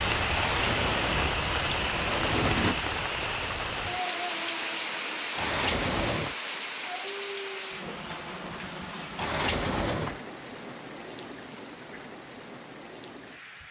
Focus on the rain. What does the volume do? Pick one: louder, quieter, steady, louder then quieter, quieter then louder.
quieter.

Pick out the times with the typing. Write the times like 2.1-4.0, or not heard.
not heard.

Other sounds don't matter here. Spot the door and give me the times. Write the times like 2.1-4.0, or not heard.
0.3-2.8, 5.3-6.3, 9.2-10.2.